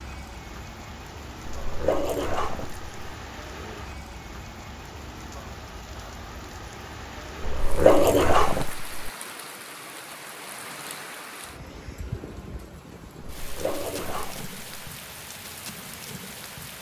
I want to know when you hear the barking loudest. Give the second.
8 s.